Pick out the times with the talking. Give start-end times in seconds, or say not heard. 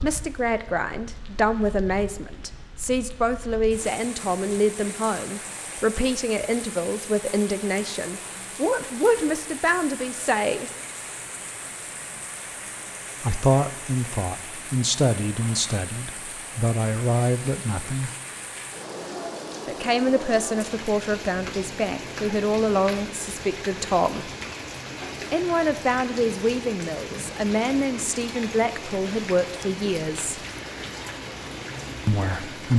0.0-10.7, 13.2-18.1, 19.6-24.3, 25.3-30.4, 32.0-32.7.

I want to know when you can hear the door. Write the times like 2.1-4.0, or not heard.
not heard.